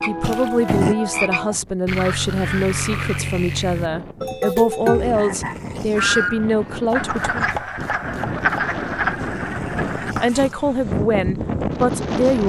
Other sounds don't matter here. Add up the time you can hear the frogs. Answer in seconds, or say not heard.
10 s.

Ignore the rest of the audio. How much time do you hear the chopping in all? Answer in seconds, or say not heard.
2 s.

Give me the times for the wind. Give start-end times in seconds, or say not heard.
0.0-12.4.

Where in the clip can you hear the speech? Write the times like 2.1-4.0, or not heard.
0.1-7.5, 10.2-12.4.